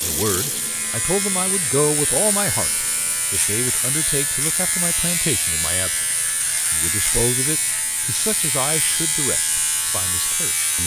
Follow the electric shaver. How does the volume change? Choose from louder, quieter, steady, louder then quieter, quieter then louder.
steady.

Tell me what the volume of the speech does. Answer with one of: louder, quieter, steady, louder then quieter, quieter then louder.
quieter.